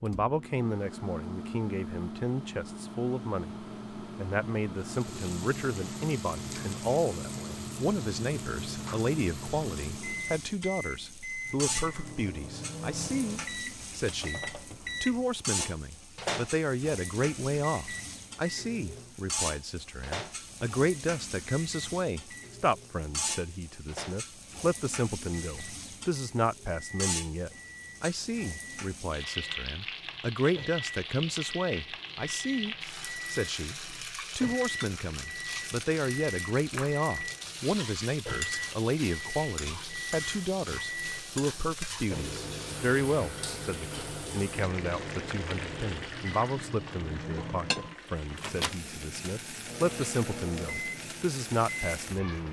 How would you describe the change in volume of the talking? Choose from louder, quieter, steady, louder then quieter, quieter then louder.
steady.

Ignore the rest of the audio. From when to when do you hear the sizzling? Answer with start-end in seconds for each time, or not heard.
4.8-52.4.